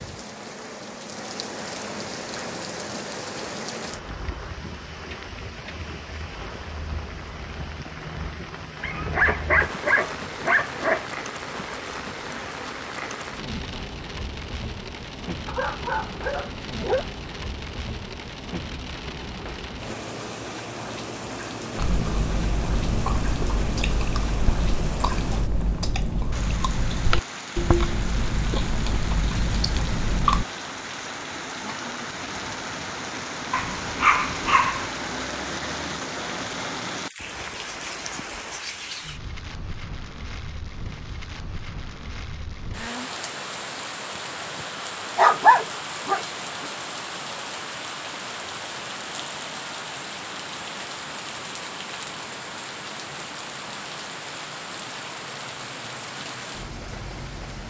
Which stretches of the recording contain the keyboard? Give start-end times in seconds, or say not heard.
not heard.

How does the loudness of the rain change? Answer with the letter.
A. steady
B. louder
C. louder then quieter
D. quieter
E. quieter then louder
A.